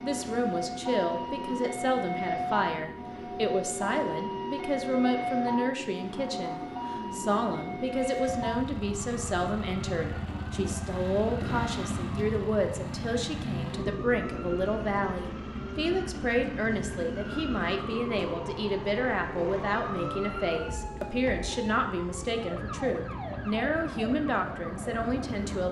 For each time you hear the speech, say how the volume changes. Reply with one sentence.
You can hear the speech from 0.0 to 25.6 s, at a steady volume.